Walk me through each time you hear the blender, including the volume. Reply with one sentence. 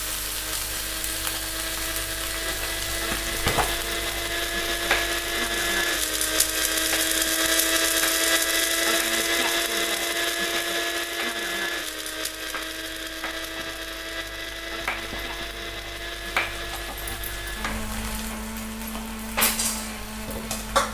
You can hear the blender from 0.0 to 20.8 s, getting louder then quieter.